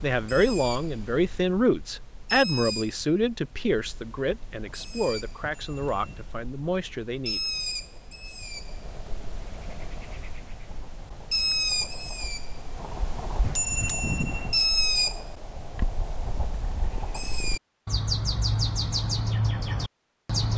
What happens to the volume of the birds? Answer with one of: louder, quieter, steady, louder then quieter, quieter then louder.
louder.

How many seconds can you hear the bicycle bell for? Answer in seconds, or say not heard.
2 s.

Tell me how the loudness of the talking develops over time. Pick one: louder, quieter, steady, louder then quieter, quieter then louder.
quieter.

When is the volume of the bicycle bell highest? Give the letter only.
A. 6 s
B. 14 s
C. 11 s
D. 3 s
B.